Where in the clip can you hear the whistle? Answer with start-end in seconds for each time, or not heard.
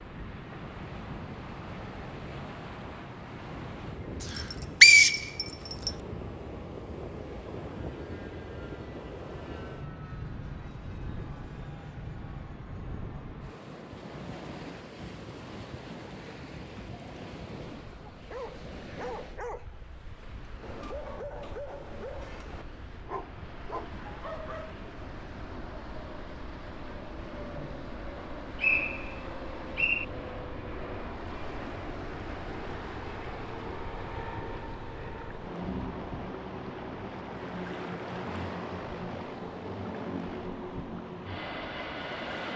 4.3-5.9, 28.1-30.1.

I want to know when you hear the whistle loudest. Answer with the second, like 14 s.
5 s.